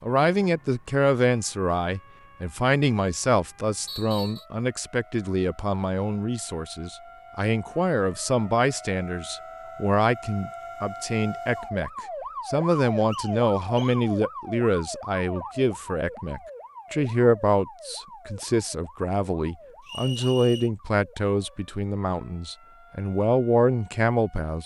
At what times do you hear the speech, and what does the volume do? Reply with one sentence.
The speech can be heard from 0.0 to 24.6 s, at a steady volume.